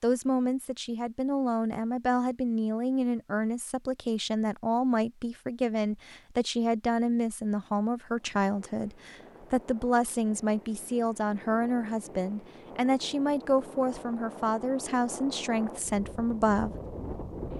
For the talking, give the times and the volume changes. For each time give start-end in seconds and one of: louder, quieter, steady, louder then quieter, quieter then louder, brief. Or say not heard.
0.0-16.7 steady.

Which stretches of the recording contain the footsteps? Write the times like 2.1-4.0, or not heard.
not heard.